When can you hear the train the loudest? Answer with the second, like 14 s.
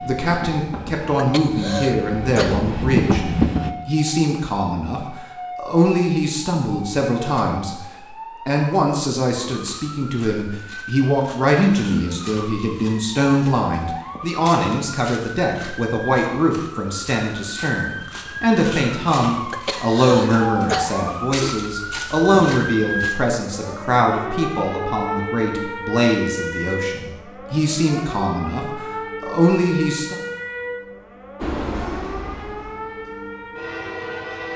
3 s.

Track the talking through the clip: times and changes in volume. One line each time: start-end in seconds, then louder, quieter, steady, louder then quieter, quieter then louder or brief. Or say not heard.
0.0-30.2 steady.